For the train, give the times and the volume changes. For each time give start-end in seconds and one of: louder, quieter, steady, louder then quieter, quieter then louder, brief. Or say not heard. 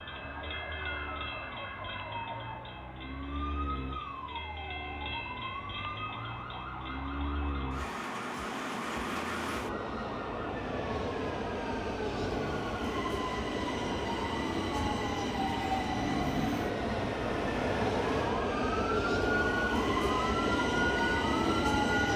0.0-22.1 louder.